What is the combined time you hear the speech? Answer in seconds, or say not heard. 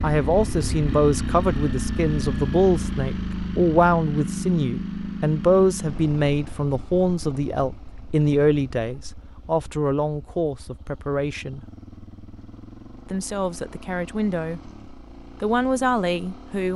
15 s.